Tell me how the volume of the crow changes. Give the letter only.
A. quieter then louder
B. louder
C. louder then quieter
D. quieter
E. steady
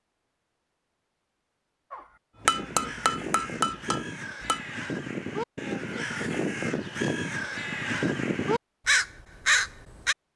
B.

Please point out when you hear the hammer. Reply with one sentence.
The hammer can be heard from 2.5 to 4.6 s.